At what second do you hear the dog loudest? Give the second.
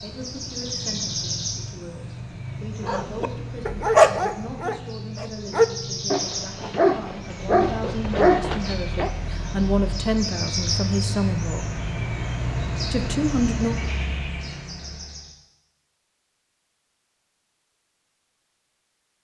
4 s.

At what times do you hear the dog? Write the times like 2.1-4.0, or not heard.
2.9-9.1.